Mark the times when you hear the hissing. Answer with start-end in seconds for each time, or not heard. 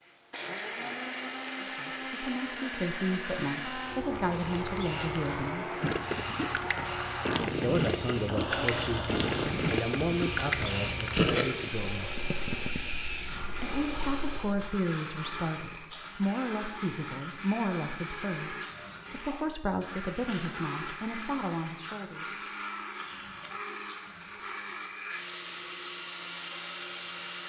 3.6-14.8.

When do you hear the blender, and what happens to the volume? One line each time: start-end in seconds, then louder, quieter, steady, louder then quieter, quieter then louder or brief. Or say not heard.
0.0-27.4 steady.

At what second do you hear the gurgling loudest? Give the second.
11 s.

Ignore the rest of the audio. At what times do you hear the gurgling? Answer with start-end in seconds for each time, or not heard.
5.8-12.9.